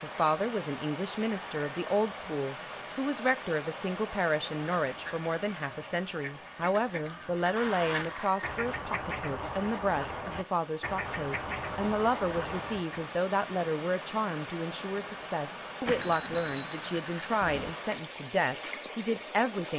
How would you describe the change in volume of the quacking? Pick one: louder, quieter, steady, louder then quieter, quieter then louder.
louder.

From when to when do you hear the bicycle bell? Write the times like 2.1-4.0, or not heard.
1.3-2.3, 7.5-8.6, 15.8-17.8.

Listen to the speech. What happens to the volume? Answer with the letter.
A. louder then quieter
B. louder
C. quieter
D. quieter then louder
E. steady
E.